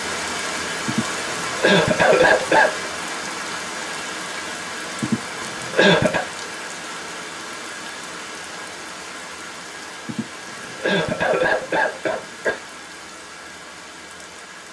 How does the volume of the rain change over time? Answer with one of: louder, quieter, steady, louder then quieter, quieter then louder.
quieter.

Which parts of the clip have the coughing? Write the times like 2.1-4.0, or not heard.
0.8-2.9, 5.0-6.2, 10.1-12.6.